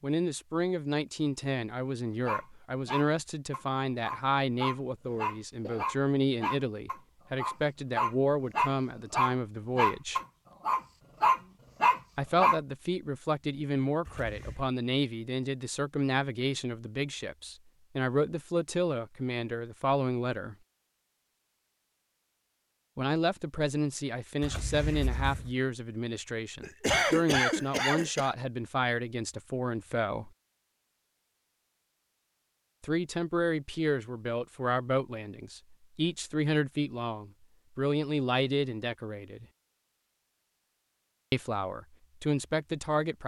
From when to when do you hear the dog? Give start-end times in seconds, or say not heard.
2.2-12.6.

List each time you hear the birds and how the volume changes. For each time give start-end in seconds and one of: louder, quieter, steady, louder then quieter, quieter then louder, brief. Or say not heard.
not heard.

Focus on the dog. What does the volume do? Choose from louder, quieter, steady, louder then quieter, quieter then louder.
louder.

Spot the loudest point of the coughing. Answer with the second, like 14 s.
27 s.